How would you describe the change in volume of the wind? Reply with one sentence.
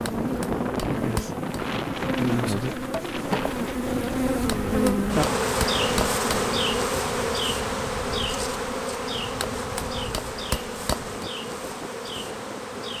The volume of the wind goes down.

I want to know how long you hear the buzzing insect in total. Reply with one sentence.
You can hear the buzzing insect for 13 seconds altogether.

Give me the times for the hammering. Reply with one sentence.
You can hear the hammering from 0.1 to 1.6 s, from 4.5 to 6.4 s and from 9.4 to 11.2 s.